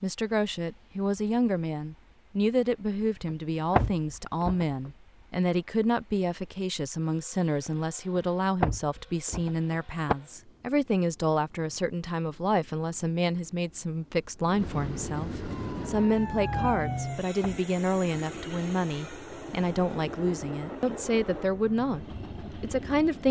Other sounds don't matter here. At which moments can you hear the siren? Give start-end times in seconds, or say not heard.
15.6-17.2.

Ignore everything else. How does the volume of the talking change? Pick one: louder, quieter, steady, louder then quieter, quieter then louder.
steady.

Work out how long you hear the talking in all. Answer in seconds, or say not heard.
23 s.